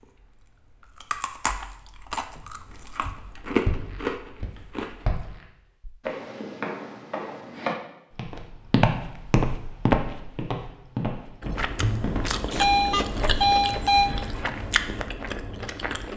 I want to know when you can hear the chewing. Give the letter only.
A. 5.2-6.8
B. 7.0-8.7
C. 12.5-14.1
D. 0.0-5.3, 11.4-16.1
D.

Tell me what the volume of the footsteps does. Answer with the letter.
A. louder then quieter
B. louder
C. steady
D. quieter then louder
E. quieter
A.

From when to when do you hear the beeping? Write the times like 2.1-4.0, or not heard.
12.5-14.1.